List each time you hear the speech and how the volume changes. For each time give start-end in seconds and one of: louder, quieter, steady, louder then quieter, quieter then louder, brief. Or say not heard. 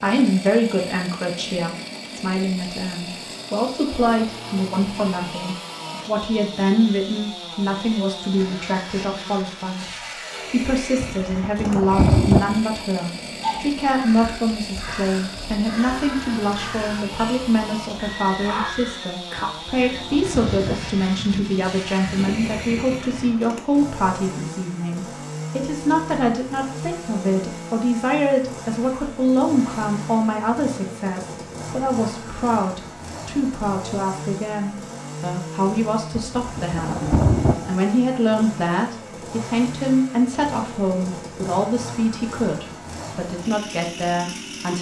0.0-44.7 steady.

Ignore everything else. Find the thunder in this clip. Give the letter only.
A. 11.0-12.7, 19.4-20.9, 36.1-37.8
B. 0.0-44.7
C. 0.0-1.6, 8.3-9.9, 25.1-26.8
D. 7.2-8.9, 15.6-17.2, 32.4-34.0
A.